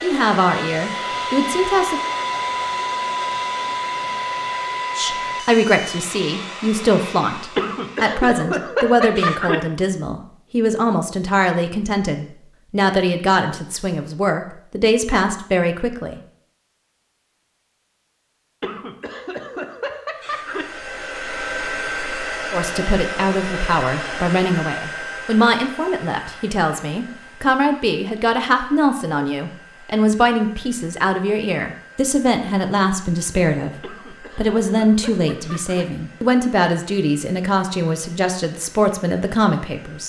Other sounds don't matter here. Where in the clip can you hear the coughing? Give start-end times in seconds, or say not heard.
7.5-9.6, 18.6-20.6, 33.8-35.9.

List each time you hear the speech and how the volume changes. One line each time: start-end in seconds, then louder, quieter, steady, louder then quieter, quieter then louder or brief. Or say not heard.
0.0-2.0 brief
5.0-16.2 steady
22.5-40.0 steady.